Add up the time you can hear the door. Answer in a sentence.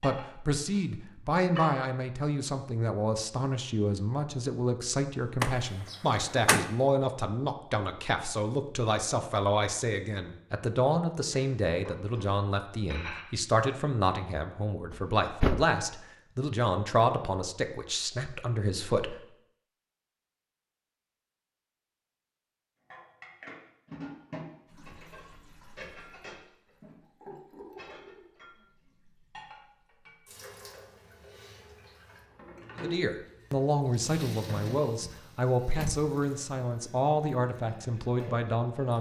The door can be heard for 3 seconds in total.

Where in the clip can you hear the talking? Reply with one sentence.
You can hear the talking from 0.0 to 19.1 s and from 32.8 to 38.9 s.